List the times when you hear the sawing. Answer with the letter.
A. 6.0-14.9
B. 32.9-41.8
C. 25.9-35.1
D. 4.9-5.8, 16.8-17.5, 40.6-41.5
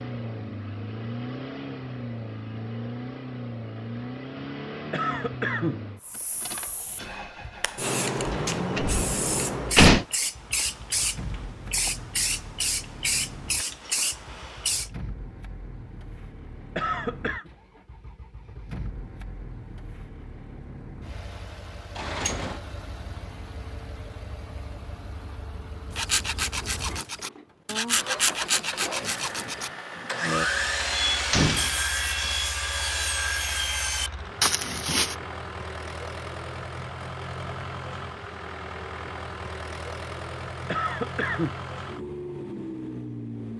C.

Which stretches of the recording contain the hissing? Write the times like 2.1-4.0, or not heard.
6.0-14.9.